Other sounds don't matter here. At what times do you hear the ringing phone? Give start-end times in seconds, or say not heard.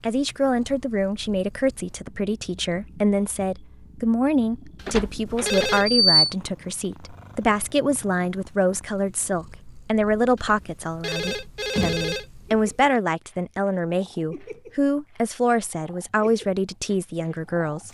4.8-6.0, 10.3-13.0.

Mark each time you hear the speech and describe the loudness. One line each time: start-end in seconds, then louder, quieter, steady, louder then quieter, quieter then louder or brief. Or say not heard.
0.0-17.8 steady.